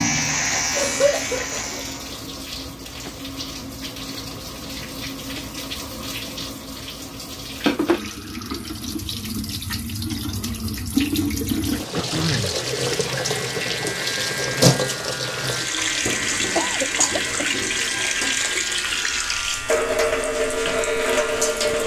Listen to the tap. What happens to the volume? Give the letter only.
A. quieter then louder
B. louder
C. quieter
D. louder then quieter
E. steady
B.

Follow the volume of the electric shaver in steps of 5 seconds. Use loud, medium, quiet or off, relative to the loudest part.
loud, off, medium, medium, medium.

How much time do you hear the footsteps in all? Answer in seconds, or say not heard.
not heard.